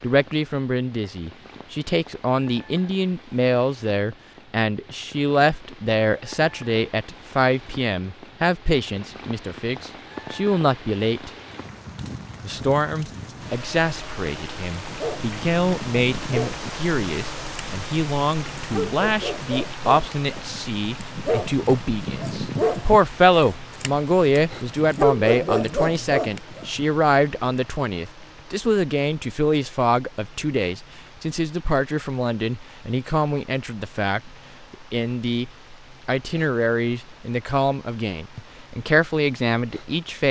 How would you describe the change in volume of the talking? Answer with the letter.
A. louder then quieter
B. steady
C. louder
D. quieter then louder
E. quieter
B.